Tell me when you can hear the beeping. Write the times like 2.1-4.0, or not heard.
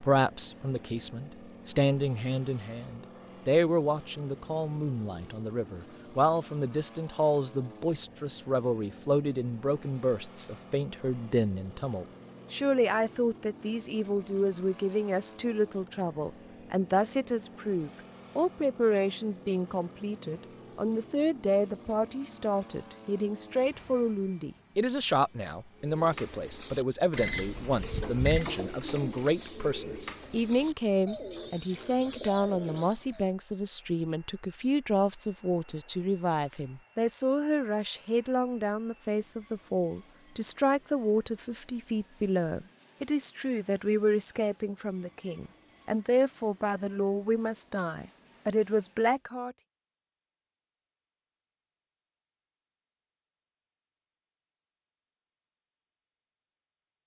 27.1-28.4.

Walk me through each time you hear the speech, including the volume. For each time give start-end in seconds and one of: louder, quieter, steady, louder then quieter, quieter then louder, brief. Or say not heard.
0.0-49.5 steady.